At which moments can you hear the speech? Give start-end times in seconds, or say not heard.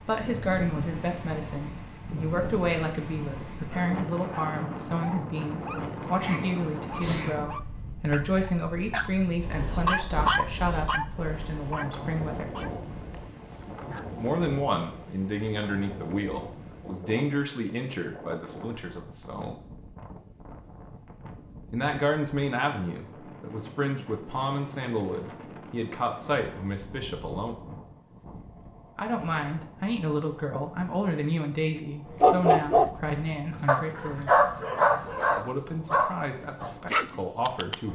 0.0-12.6, 14.2-19.6, 21.7-27.6, 28.9-34.5, 35.4-37.9.